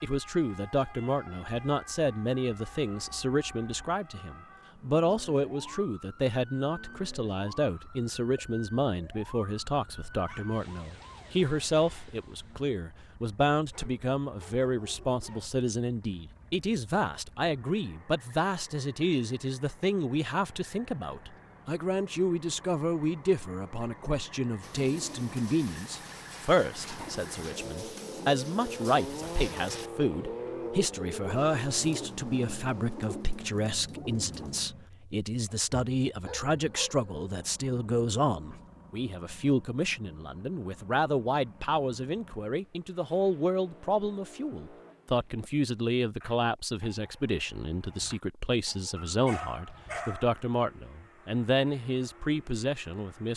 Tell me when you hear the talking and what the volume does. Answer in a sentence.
The talking can be heard from 0.0 to 53.3 s, at a steady volume.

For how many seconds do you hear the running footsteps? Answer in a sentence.
You can't hear the running footsteps here.